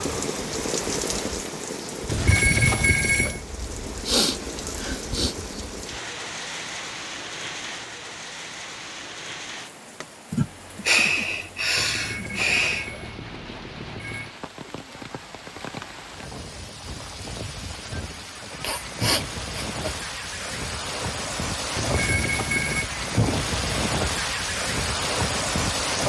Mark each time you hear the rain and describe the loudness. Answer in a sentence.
You can hear the rain from 0.0 to 26.0 s, getting quieter then louder.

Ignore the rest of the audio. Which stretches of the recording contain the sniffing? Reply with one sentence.
You can hear the sniffing from 4.0 to 5.3 s, from 10.3 to 12.9 s and from 18.6 to 19.9 s.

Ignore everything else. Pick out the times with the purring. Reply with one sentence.
The purring can't be heard in this clip.